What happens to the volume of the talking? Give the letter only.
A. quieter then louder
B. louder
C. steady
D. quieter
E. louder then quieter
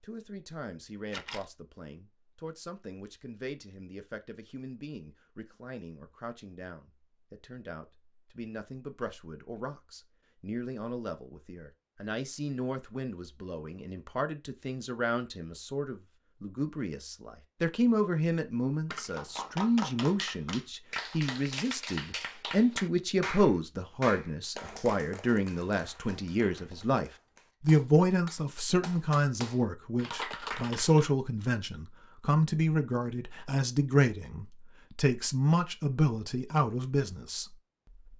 B.